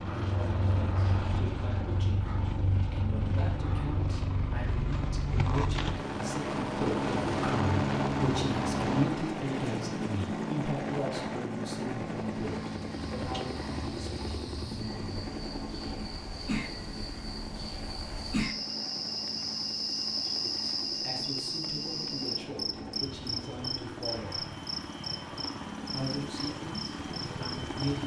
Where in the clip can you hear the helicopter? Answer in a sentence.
You can hear the helicopter from 0.0 to 28.0 s.